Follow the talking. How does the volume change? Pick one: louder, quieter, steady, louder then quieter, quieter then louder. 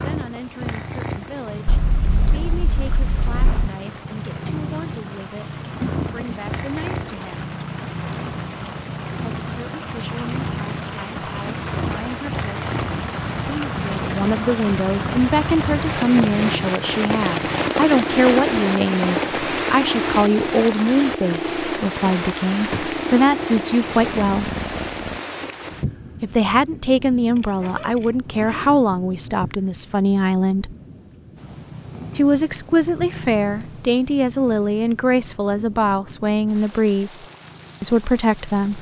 louder.